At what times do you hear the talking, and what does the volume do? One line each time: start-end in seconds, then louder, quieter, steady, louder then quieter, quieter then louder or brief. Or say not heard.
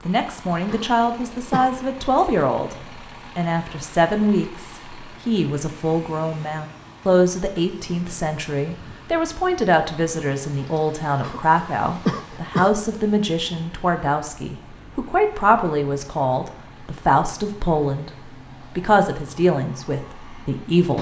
0.1-20.9 steady.